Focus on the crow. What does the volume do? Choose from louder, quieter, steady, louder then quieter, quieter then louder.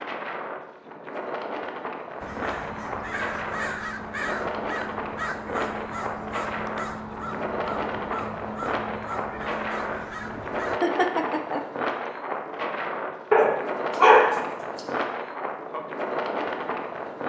steady.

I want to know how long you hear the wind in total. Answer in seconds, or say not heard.
17 s.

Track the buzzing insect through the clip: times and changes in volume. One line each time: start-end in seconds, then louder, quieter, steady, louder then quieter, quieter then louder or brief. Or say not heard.
not heard.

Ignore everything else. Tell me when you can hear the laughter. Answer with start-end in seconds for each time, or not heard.
10.3-11.7.